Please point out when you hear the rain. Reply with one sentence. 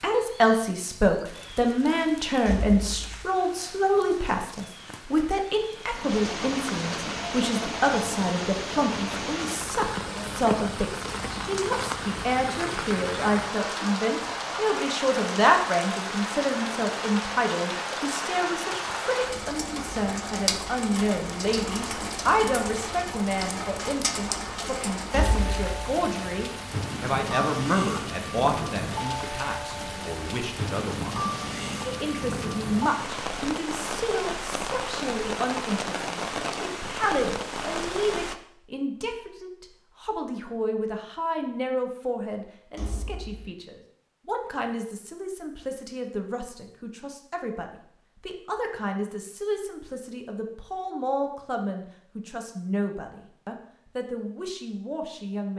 You can hear the rain from 0.0 to 38.4 s.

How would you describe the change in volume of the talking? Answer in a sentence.
The loudness of the talking goes down.